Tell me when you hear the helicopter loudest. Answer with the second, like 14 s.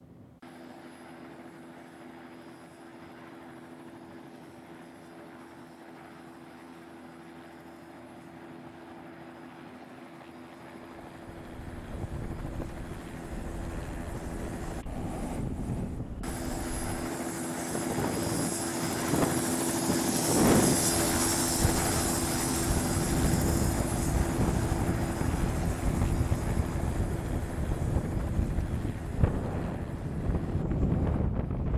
21 s.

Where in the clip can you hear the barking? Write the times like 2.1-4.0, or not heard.
not heard.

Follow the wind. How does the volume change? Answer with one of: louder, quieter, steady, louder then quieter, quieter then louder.
louder.